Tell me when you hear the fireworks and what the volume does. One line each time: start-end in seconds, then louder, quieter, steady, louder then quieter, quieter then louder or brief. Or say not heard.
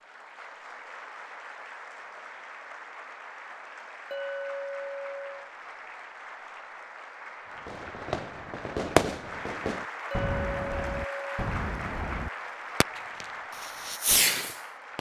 7.7-14.9 quieter then louder.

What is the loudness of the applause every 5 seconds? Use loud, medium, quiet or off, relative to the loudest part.
medium, loud, loud.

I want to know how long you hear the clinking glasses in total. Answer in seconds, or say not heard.
3 s.